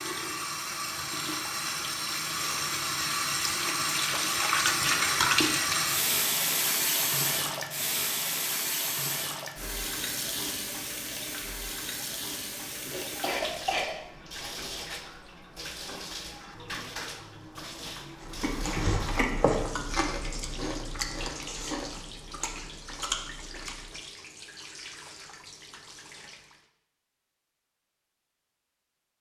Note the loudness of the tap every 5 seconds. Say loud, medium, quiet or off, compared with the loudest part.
loud, loud, medium, quiet, quiet, quiet.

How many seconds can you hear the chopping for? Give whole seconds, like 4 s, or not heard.
not heard.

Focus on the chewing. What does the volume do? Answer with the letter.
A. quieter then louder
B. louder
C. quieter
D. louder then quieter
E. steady
C.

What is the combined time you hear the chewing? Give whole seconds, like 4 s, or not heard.
6 s.